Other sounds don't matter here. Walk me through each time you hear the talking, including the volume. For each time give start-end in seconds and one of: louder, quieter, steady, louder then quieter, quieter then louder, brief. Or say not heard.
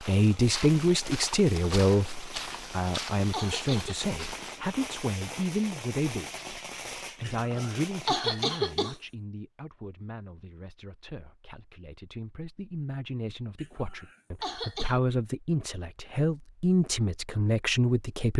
0.0-18.3 quieter then louder.